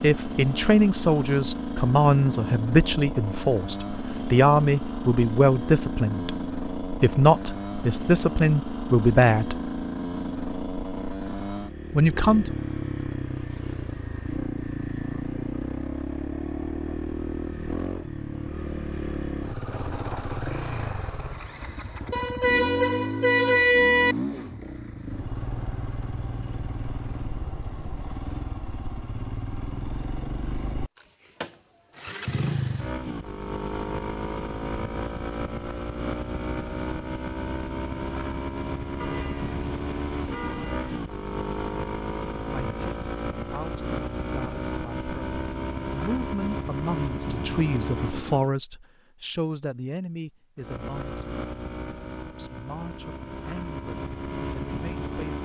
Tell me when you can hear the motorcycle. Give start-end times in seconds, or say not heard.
0.0-48.5, 50.5-55.4.